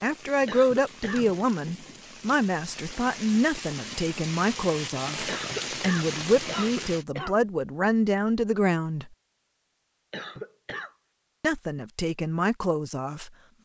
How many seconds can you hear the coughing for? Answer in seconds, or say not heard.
4 s.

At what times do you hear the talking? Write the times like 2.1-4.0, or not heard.
0.0-9.1, 11.4-13.3.